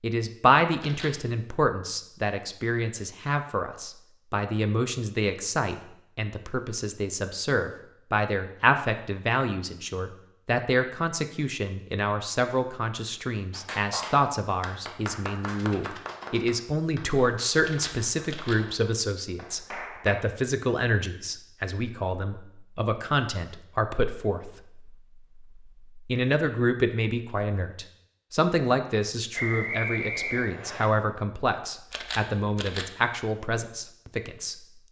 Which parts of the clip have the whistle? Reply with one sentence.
The whistle can be heard from 29.4 to 30.9 s.